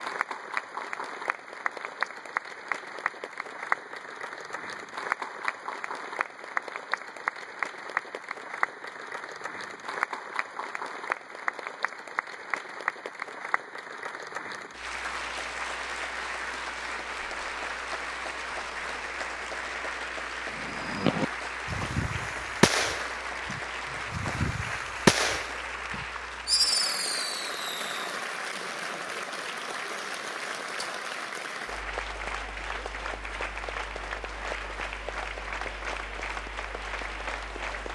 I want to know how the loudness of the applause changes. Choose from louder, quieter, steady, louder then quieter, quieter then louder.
steady.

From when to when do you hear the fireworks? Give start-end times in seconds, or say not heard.
20.5-28.1.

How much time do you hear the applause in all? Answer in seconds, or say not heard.
38 s.